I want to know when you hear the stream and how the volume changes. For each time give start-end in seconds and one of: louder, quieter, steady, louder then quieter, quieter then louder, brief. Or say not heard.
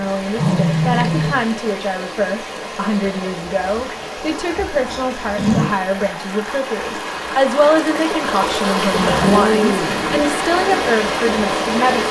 0.0-12.0 louder.